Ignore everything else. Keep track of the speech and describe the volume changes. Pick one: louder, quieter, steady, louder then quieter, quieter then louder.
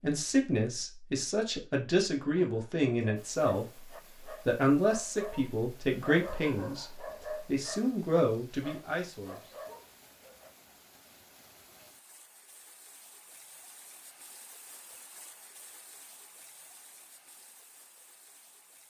steady.